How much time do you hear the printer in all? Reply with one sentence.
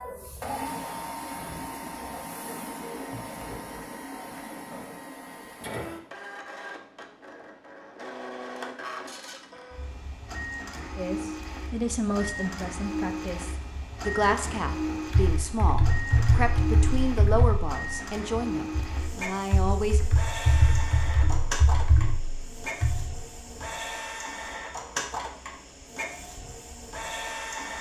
You can hear the printer for 28 seconds altogether.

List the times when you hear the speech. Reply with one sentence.
You can hear the speech from 10.9 to 20.0 s.